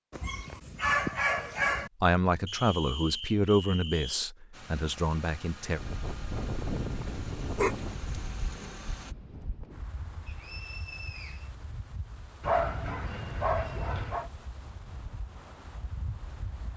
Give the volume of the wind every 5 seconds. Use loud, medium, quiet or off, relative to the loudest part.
off, loud, medium, medium.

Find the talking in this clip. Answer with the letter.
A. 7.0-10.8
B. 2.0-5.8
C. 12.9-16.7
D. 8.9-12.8
B.